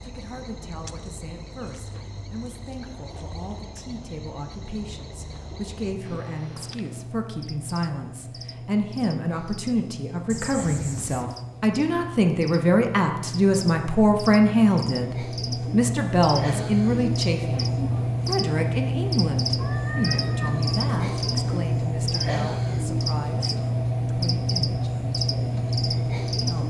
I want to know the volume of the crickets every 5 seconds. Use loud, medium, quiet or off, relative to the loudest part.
quiet, quiet, medium, loud, loud, loud.